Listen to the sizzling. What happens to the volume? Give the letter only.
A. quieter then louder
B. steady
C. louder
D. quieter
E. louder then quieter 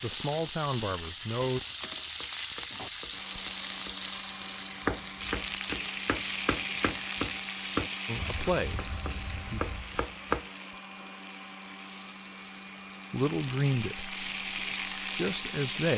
A.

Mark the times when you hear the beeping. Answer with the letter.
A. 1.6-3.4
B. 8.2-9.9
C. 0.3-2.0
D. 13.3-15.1
B.